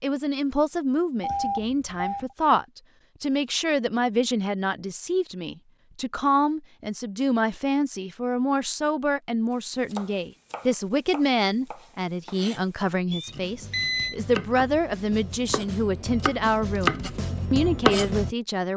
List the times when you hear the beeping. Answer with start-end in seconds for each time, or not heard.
1.2-2.4, 13.1-14.2.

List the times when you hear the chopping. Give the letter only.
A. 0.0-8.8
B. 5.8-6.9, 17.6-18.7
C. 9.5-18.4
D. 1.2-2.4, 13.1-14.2
C.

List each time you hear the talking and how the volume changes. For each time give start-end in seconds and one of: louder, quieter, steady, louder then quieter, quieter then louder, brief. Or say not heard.
0.0-18.7 steady.